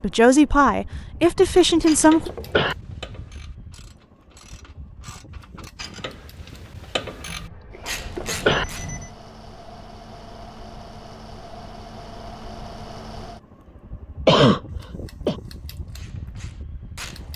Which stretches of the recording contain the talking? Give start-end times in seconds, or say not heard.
0.0-2.3.